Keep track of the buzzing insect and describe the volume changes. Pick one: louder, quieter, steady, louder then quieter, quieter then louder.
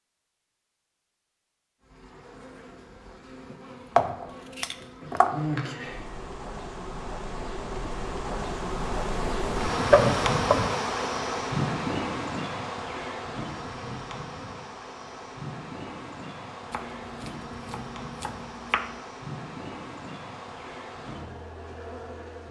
louder then quieter.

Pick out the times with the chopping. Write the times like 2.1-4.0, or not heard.
3.5-5.3, 9.9-10.7, 16.7-18.9.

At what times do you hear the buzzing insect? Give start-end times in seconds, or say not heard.
1.8-22.4.